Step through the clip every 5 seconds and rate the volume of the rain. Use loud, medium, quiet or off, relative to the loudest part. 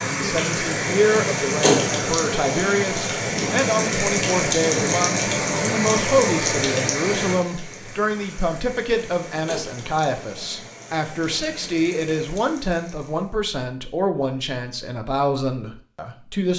loud, loud, quiet, off.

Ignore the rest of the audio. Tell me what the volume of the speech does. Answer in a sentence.
The volume of the speech stays about the same.